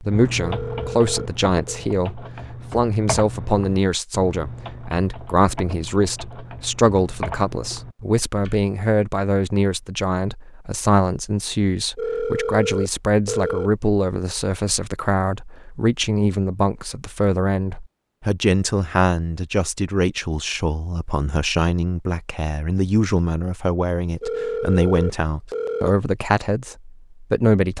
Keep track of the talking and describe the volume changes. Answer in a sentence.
The loudness of the talking stays about the same.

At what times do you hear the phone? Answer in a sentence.
The phone can be heard from 0.3 to 1.9 s, from 11.9 to 13.7 s and from 24.2 to 25.9 s.